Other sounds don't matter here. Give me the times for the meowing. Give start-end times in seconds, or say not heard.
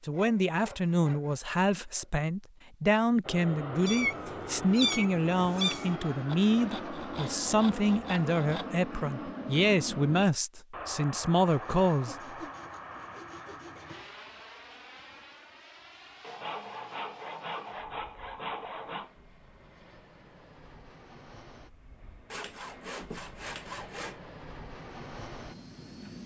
3.9-5.9.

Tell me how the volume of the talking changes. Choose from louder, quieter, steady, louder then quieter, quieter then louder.
steady.